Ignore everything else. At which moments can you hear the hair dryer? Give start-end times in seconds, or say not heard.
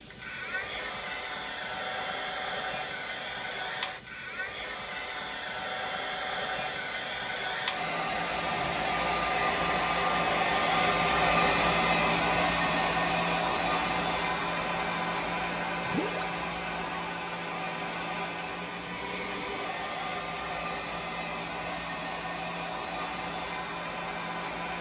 0.0-24.7.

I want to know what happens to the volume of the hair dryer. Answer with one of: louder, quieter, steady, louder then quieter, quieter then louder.
louder then quieter.